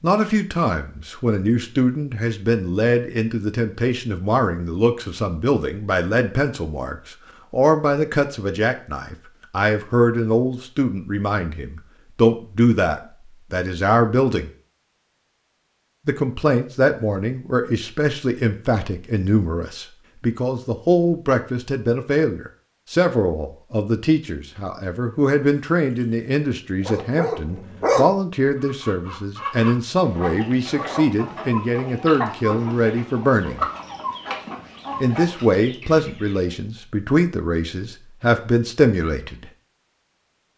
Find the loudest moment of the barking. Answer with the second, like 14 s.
28 s.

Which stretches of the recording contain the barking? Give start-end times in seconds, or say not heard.
25.6-28.1.